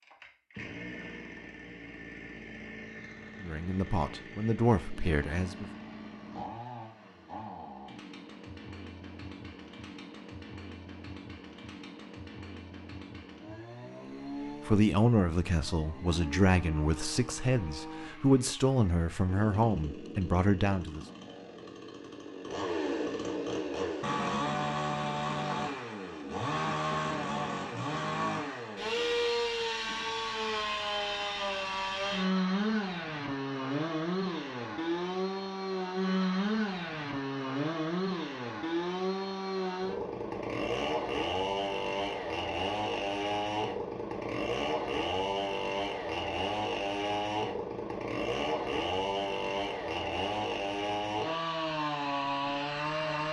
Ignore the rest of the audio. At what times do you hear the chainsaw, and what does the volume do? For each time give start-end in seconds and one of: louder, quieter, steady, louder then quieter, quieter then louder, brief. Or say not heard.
0.0-53.2 louder.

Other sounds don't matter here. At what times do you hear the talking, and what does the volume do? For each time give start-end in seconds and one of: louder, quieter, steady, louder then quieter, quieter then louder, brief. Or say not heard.
3.4-5.7 brief
14.7-21.1 steady.